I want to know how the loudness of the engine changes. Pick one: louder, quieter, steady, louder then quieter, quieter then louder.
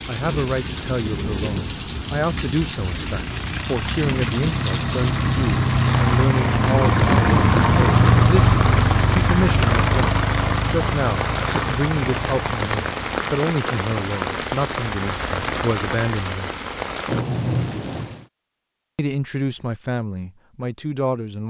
louder then quieter.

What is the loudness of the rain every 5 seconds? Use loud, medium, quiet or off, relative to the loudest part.
loud, loud, loud, loud, off.